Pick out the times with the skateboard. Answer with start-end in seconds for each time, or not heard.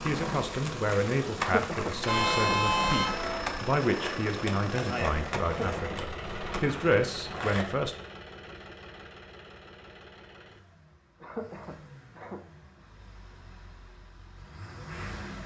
0.0-7.7.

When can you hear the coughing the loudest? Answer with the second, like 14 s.
2 s.